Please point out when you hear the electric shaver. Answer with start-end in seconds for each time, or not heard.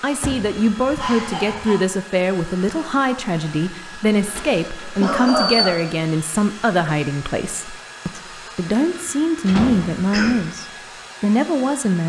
not heard.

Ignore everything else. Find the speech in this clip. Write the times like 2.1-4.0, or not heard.
0.0-12.0.